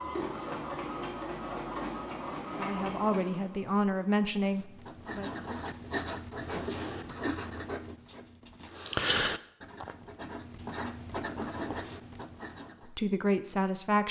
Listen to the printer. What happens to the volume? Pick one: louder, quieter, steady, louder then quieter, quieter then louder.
quieter.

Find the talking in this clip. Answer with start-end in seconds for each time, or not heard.
2.5-5.3, 12.8-14.0.